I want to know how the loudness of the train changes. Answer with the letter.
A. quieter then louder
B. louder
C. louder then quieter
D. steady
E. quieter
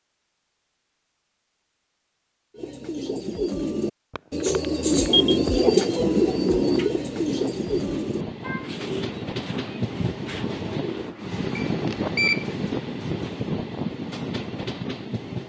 B.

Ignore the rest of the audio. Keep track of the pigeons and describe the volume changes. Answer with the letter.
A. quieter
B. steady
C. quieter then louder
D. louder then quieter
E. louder
D.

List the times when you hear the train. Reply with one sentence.
The train can be heard from 4.6 to 15.4 s.